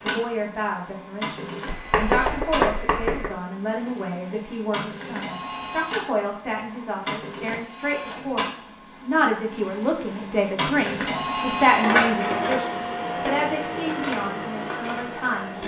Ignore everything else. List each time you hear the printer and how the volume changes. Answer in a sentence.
You can hear the printer from 0.0 to 15.6 s, getting louder.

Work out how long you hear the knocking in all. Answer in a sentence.
The knocking can be heard for 2 seconds in total.